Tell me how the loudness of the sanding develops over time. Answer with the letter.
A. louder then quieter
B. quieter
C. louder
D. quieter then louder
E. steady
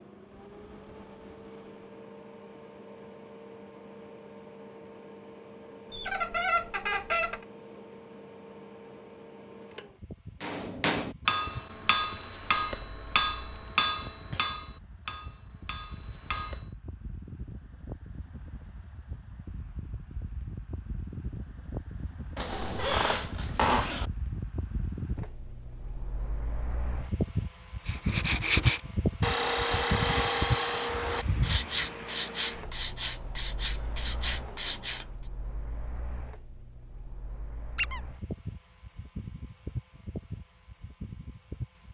B.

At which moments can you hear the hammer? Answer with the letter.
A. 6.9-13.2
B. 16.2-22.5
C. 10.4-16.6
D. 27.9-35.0
C.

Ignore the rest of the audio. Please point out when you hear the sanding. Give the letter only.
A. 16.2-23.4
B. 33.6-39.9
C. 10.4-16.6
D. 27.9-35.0
D.